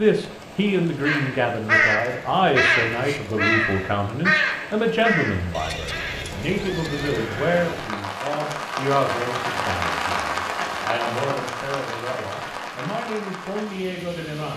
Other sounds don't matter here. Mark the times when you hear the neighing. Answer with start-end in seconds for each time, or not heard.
5.5-7.3.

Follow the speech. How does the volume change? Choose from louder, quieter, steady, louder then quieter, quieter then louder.
quieter.